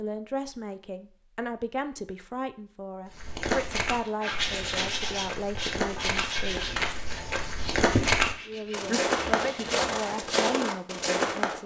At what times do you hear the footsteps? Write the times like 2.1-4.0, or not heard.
3.1-11.6.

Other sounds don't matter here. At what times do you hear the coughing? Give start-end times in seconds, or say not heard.
not heard.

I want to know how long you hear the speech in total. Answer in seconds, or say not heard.
10 s.